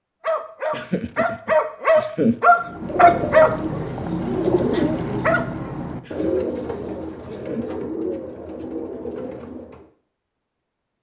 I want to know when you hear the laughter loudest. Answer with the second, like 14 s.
2 s.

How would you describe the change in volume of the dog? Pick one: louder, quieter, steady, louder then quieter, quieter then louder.
louder then quieter.